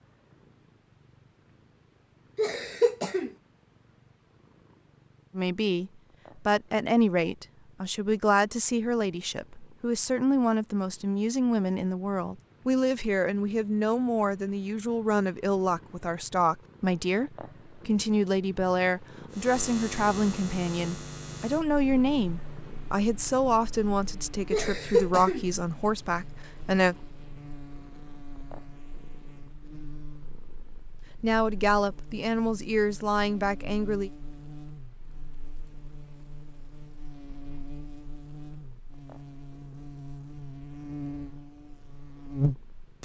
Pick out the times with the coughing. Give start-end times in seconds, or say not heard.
2.4-3.3, 24.5-25.4.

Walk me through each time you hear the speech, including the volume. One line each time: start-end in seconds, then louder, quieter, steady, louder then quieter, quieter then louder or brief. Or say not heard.
5.3-26.9 steady
31.2-34.1 brief.